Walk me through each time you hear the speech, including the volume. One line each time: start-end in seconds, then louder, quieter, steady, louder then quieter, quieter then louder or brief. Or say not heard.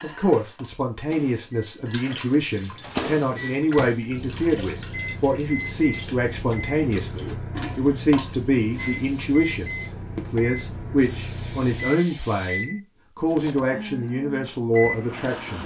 0.0-15.6 steady.